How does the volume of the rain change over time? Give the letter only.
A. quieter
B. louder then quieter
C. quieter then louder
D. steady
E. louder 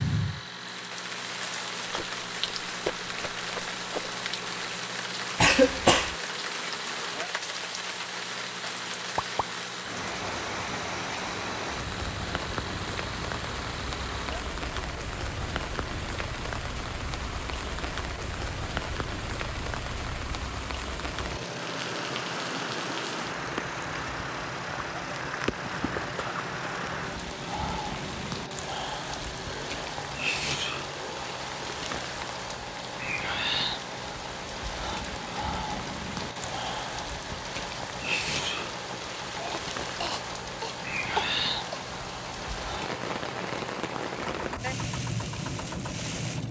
D.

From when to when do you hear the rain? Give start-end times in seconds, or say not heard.
0.0-46.4.